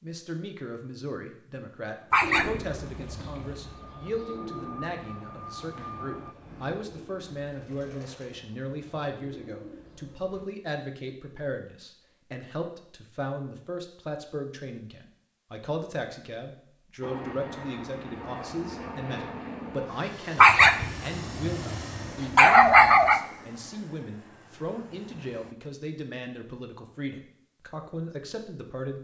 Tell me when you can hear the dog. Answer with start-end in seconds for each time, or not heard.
2.1-3.4, 20.4-23.2.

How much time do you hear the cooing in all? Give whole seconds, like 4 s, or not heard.
8 s.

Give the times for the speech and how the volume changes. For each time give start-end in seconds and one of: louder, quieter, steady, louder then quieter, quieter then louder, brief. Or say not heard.
0.0-29.0 steady.